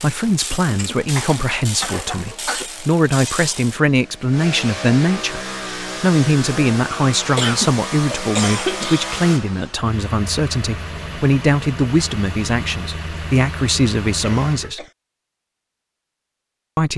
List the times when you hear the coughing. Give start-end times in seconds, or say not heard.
0.5-2.7, 7.3-9.1, 14.2-14.9.